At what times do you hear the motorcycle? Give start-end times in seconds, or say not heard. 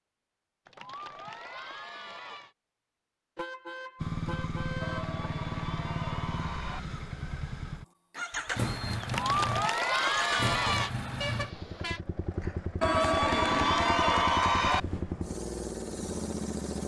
4.0-16.8.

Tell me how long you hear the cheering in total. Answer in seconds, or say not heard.
8 s.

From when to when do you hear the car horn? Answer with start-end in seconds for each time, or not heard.
3.4-5.2, 11.2-12.0.